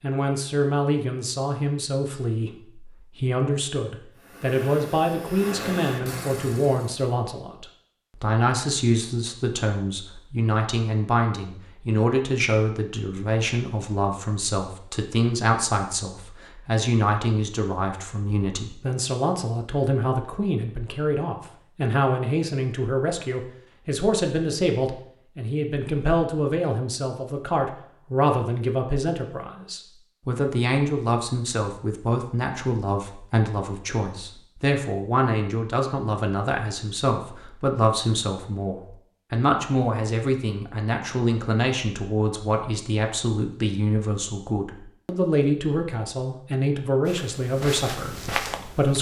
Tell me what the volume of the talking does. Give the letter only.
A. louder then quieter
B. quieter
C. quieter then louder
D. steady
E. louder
D.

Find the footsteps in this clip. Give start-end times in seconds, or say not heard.
47.0-48.9.